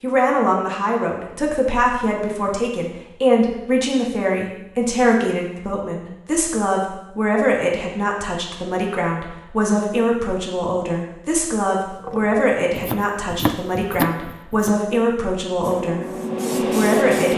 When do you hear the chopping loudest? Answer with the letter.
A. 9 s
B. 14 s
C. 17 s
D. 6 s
B.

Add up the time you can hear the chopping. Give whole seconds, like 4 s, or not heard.
3 s.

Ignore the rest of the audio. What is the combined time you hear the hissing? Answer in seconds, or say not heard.
2 s.